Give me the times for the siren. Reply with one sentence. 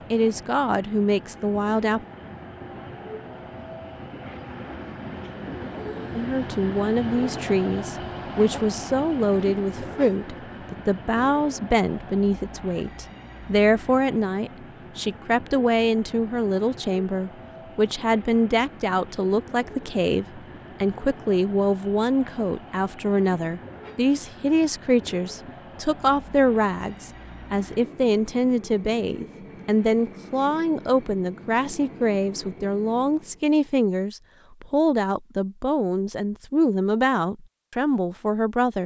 The siren can't be heard in this clip.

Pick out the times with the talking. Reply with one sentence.
You can hear the talking from 0.1 to 2.0 s and from 6.2 to 38.8 s.